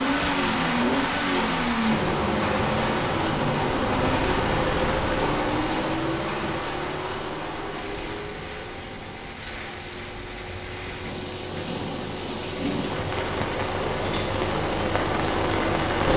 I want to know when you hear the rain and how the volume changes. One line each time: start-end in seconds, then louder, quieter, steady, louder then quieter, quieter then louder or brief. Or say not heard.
0.0-16.1 quieter then louder.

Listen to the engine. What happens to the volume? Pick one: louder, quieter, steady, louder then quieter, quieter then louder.
quieter then louder.